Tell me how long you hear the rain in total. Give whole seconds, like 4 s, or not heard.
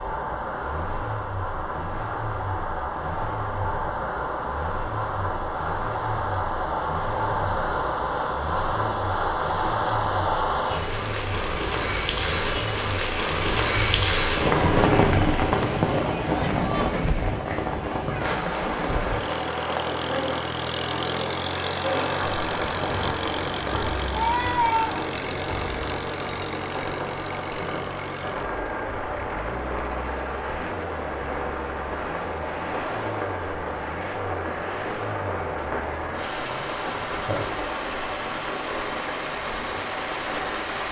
41 s.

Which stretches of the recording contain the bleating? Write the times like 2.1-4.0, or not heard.
24.1-25.1.